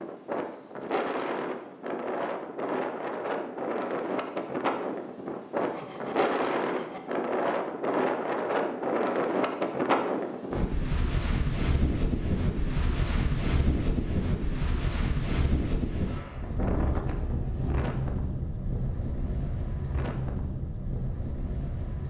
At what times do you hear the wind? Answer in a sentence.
The wind can be heard from 0.0 to 22.0 s.